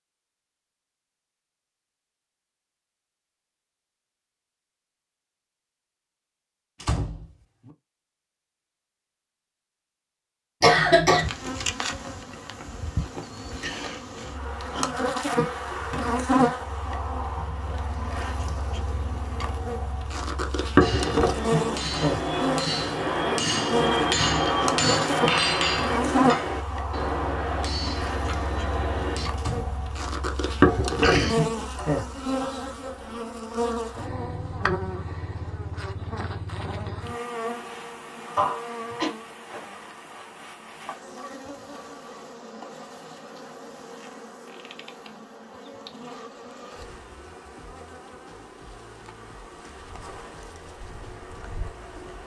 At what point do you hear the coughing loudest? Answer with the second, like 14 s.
11 s.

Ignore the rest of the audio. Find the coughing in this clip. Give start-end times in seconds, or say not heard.
10.6-11.3, 30.9-31.4, 38.4-39.1.